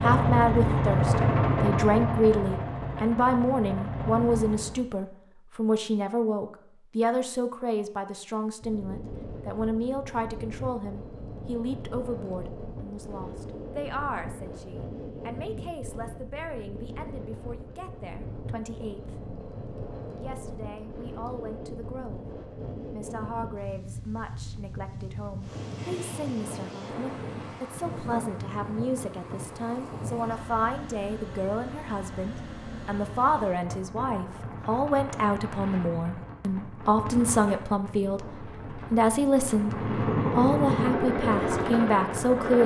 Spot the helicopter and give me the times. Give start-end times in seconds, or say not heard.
0.0-4.8, 39.5-42.6.